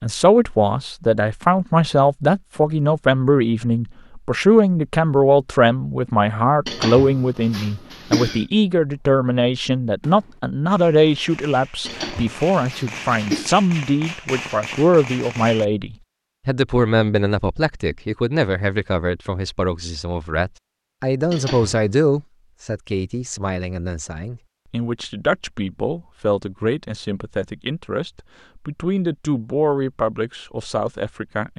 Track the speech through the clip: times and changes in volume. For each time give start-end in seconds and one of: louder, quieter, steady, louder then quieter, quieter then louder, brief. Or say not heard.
0.0-31.5 quieter.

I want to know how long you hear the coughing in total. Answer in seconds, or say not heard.
4 s.